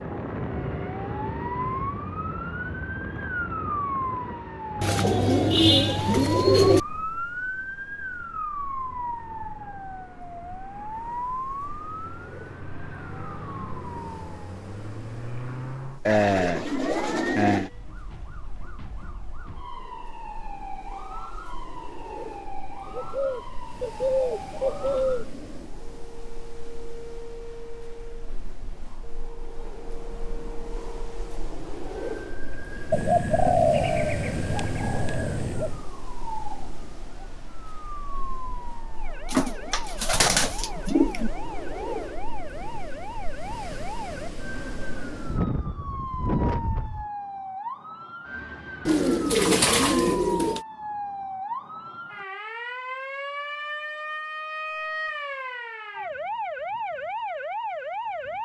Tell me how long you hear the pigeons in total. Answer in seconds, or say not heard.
13 s.